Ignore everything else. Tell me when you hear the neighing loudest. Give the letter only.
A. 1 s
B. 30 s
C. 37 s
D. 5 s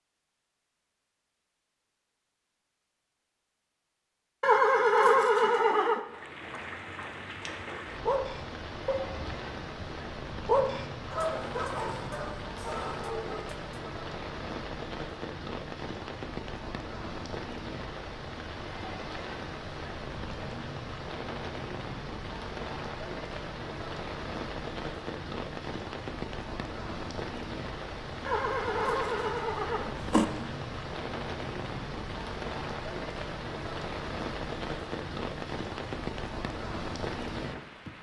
D.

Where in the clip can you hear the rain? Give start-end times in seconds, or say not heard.
6.0-37.9.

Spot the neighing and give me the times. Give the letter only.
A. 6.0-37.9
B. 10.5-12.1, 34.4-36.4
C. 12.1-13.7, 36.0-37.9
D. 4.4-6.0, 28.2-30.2
D.